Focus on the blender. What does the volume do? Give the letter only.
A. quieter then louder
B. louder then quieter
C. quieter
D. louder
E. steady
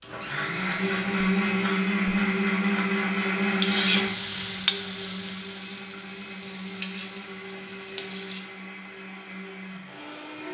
C.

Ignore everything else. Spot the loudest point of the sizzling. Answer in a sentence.
The volume of the sizzling peaks at 4 seconds.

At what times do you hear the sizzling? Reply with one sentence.
You can hear the sizzling from 3.4 to 8.6 s.